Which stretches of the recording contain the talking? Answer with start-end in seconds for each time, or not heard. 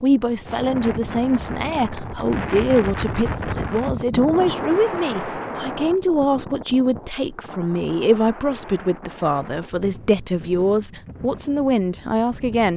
0.0-12.7.